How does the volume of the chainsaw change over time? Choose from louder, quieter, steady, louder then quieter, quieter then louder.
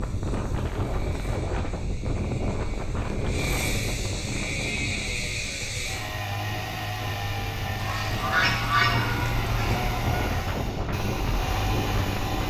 louder.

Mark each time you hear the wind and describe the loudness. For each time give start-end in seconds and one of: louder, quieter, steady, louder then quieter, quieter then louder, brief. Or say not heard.
0.0-12.4 quieter then louder.